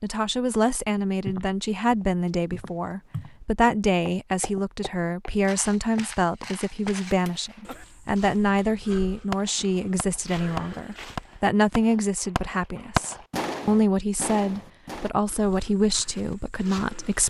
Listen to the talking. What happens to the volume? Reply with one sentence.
The volume of the talking stays about the same.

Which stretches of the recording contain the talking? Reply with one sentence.
You can hear the talking from 0.0 to 17.2 s.